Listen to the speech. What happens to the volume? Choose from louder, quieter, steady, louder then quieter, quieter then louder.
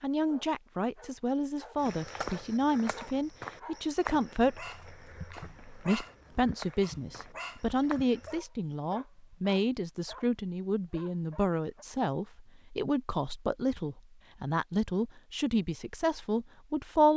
steady.